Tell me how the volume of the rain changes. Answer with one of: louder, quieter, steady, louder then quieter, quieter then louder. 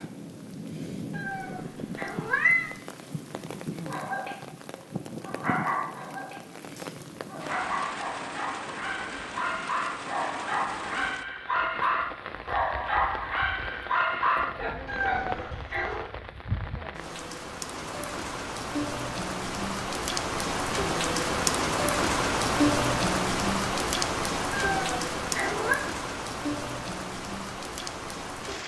louder.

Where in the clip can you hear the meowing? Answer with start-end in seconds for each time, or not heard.
1.1-2.8, 14.8-16.1, 24.5-25.8.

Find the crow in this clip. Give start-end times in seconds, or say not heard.
not heard.